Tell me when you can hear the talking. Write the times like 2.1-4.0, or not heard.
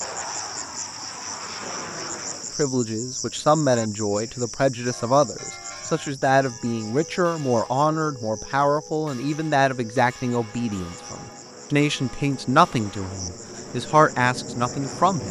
2.5-15.2.